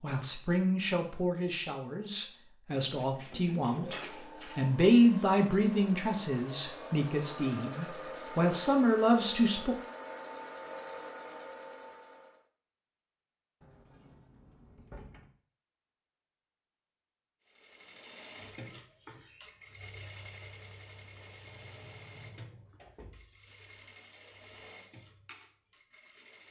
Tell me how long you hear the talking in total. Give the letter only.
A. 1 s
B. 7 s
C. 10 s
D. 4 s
C.